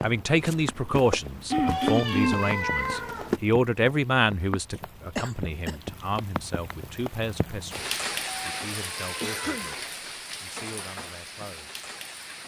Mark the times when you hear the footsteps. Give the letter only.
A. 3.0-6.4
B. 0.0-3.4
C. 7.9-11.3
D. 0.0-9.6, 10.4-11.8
B.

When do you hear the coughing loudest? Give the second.
2 s.